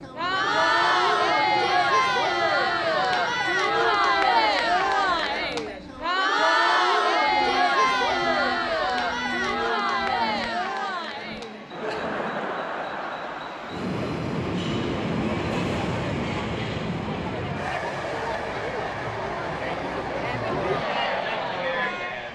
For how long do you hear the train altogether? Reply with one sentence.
The train can be heard for 22 seconds in total.